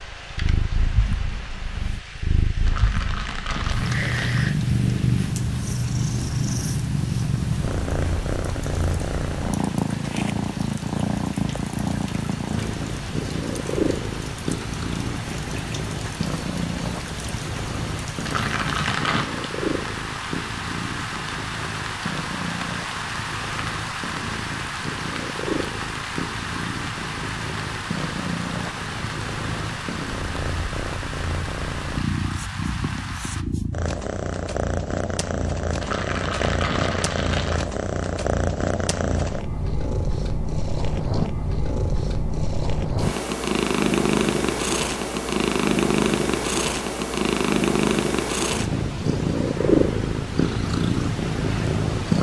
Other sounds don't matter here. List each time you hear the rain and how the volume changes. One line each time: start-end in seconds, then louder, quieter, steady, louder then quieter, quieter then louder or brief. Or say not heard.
0.0-33.5 louder.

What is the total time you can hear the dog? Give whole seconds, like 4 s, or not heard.
not heard.